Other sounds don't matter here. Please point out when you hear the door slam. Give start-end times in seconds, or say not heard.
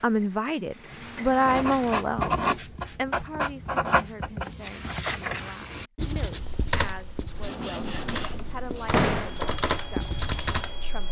8.9-9.3.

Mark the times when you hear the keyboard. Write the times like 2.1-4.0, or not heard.
6.4-11.0.